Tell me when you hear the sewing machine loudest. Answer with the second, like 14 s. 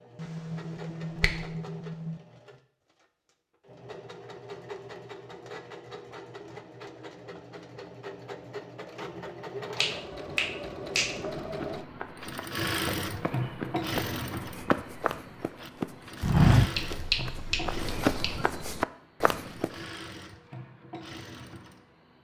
13 s.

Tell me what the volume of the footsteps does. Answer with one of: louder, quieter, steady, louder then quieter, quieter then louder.
louder then quieter.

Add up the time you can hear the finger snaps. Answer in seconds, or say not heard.
5 s.